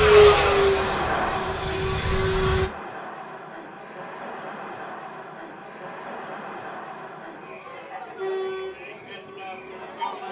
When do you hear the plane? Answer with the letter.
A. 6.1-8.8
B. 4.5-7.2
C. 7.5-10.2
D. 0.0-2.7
D.